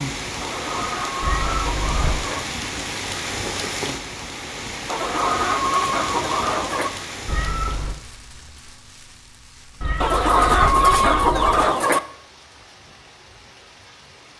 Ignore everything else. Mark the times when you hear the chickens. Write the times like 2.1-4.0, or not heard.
0.4-2.4, 4.8-6.9, 10.0-12.0.